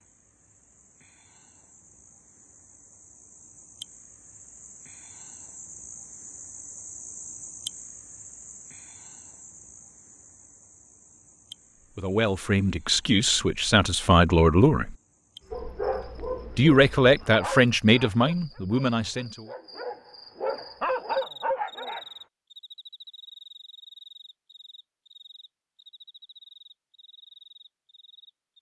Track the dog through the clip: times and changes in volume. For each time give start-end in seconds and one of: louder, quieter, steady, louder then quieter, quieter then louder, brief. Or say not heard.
15.5-22.1 quieter then louder.